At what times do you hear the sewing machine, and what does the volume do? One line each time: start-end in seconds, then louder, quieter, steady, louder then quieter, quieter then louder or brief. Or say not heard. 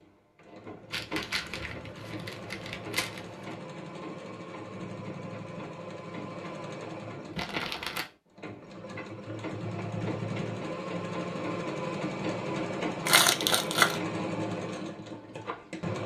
0.0-16.0 louder.